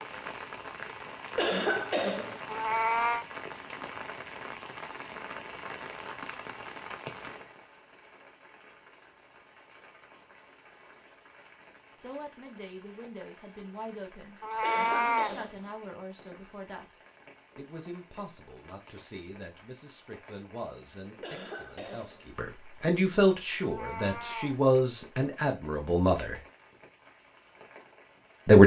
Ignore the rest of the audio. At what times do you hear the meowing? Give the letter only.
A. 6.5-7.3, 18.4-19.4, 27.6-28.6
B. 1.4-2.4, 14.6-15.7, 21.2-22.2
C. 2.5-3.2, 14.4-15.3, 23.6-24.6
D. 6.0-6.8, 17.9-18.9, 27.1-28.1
C.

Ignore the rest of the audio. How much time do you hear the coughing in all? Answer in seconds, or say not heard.
3 s.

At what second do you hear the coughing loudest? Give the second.
2 s.